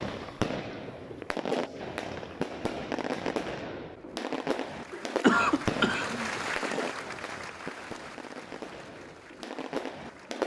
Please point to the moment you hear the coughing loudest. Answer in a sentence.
The loudest moment of the coughing is at 5 seconds.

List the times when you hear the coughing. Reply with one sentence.
The coughing can be heard from 4.9 to 6.8 s.